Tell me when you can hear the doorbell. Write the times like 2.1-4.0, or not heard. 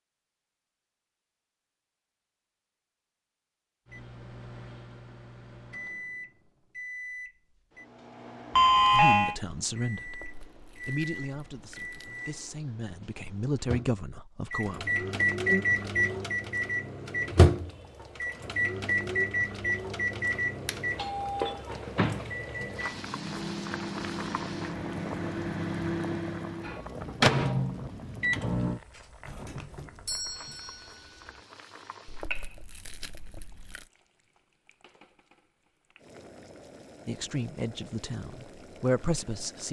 8.6-9.3, 20.6-21.6, 29.2-31.4.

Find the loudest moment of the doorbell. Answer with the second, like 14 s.
9 s.